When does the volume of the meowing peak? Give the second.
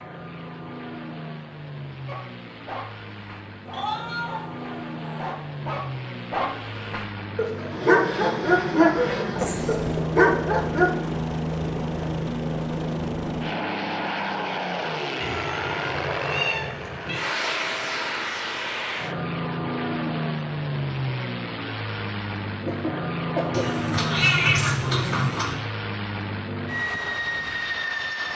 24 s.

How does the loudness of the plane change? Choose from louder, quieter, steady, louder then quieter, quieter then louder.
louder.